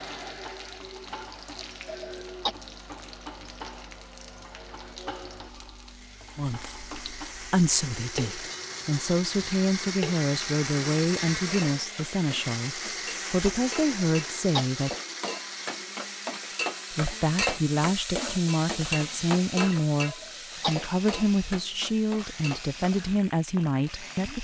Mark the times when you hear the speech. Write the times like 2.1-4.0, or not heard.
6.3-14.9, 16.9-24.3.